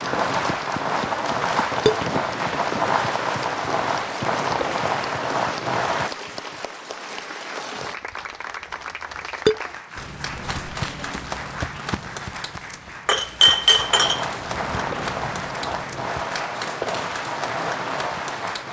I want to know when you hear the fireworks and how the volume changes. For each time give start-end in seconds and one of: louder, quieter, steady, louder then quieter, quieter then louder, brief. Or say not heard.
0.0-6.1 steady
13.8-18.6 steady.